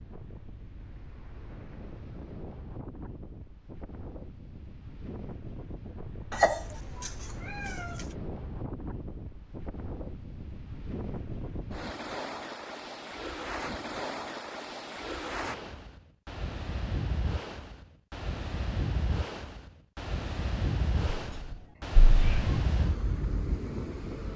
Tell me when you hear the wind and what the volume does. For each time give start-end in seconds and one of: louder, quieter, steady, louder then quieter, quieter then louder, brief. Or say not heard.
0.0-24.3 louder.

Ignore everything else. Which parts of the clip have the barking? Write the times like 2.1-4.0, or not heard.
not heard.